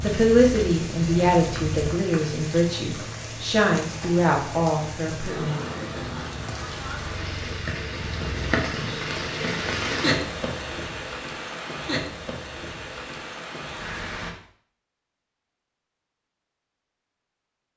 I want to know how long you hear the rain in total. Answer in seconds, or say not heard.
14 s.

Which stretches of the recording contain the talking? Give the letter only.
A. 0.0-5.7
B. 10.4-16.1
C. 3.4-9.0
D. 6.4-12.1
A.